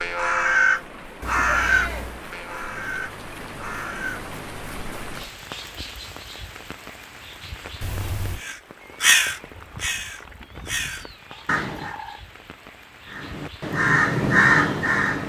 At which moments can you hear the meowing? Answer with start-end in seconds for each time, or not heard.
1.2-2.2, 7.8-8.4, 10.4-12.2.